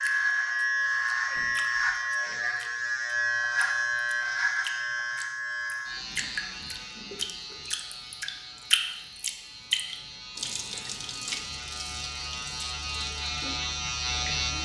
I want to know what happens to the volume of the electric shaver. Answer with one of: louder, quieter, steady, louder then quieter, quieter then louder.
quieter then louder.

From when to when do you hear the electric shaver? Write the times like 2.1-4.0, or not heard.
0.0-14.5.